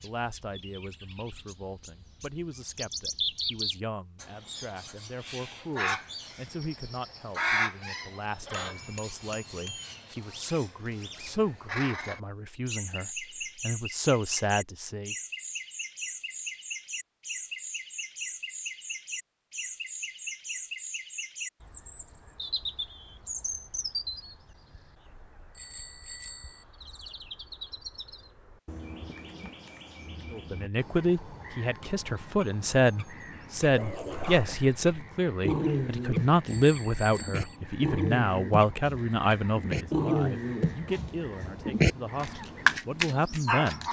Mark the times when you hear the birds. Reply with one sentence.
You can hear the birds from 0.0 to 43.8 s.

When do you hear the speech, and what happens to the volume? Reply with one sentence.
The speech can be heard from 0.0 to 15.2 s, getting louder; and from 30.3 to 43.8 s, getting quieter.